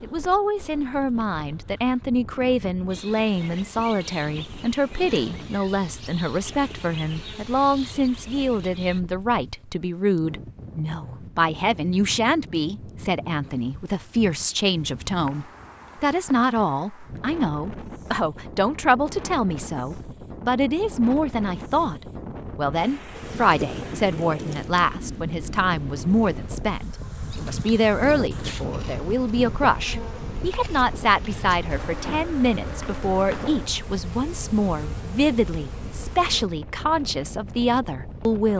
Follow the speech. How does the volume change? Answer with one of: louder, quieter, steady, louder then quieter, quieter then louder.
steady.